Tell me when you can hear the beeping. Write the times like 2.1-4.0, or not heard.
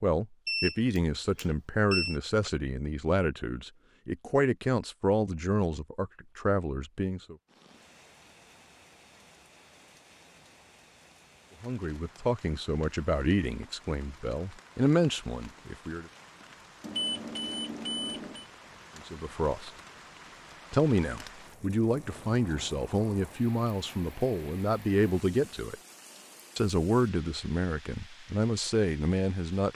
0.5-2.2, 16.8-18.4.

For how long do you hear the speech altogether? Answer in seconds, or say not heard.
21 s.